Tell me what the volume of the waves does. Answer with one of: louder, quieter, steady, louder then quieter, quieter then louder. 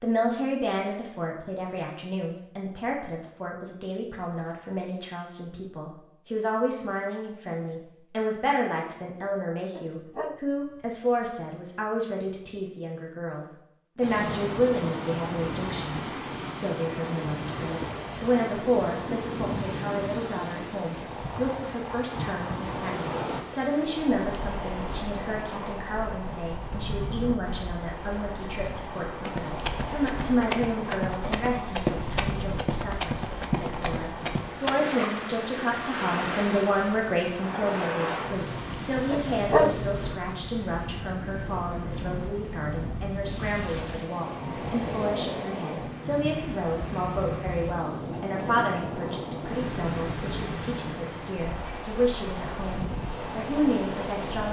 steady.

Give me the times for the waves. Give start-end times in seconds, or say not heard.
14.0-54.4.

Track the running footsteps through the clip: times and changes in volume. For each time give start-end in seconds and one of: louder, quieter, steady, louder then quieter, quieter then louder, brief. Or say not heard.
29.2-34.8 steady.